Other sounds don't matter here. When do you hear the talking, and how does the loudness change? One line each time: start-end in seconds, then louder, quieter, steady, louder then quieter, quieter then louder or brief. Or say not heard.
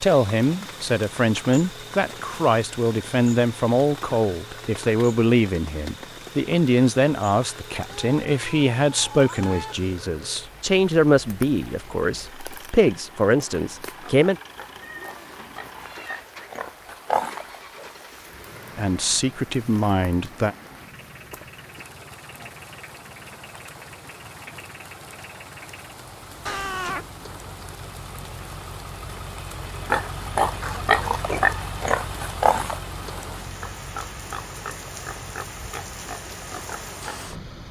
0.0-14.3 steady
18.8-20.6 brief.